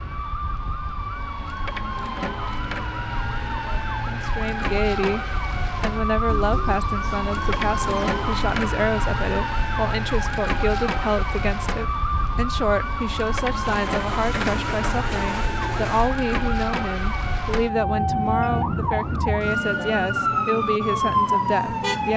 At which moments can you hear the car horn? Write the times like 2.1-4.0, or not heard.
not heard.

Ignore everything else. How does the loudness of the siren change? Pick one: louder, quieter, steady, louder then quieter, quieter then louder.
louder.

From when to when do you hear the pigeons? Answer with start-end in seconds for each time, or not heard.
6.2-8.2, 13.6-16.1.